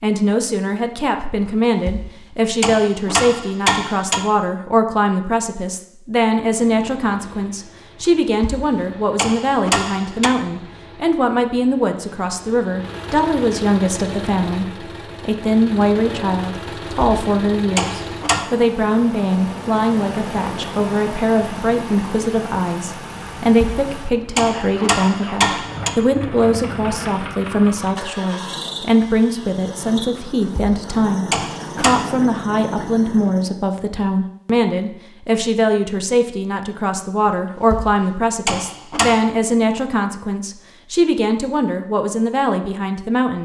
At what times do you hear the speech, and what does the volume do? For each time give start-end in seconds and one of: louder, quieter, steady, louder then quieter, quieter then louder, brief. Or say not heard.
0.0-43.3 steady.